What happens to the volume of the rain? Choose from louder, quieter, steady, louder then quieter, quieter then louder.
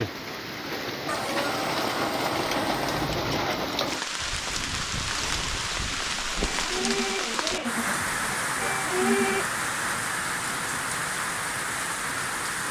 steady.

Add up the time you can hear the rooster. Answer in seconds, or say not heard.
2 s.